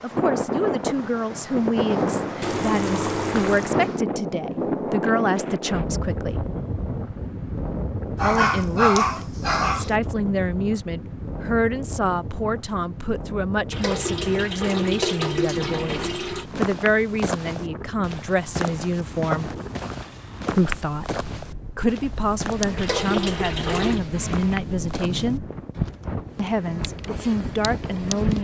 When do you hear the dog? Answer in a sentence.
The dog can be heard from 8.2 to 9.9 s.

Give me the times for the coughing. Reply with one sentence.
The coughing can't be heard in this clip.